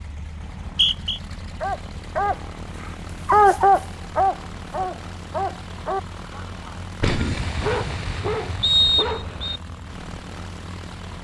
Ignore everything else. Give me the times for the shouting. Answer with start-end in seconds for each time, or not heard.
not heard.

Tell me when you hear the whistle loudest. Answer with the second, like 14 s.
9 s.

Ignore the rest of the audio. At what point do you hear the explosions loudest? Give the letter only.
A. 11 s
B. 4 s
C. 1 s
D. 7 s
D.